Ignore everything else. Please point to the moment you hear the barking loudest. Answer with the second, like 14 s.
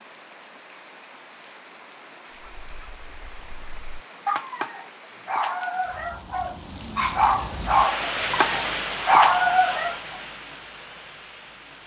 9 s.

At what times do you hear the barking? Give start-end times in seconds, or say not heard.
2.4-9.9.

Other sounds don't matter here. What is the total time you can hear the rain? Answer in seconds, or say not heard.
12 s.